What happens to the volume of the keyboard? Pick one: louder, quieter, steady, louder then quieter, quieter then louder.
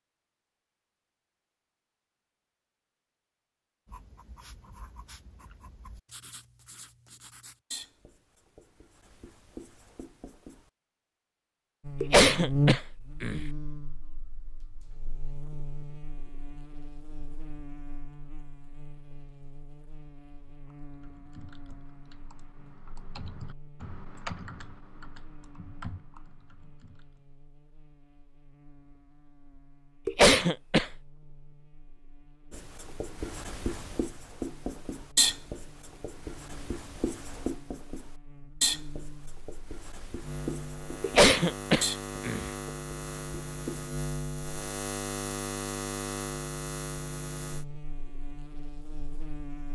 louder then quieter.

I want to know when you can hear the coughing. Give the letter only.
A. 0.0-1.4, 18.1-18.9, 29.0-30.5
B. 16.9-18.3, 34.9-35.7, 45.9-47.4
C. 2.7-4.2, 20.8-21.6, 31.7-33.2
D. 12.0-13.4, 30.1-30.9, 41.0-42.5
D.